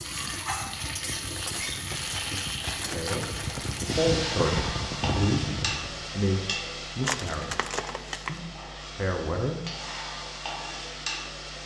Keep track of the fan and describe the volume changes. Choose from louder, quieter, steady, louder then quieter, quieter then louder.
louder.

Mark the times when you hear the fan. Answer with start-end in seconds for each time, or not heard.
0.0-6.0.